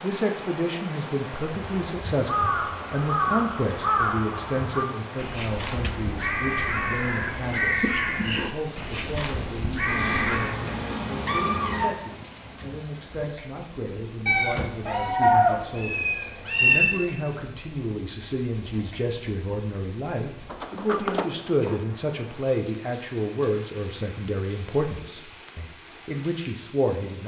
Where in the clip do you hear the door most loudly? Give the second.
21 s.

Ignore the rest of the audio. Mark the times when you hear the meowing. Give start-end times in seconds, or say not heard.
9.8-11.8, 14.2-16.9.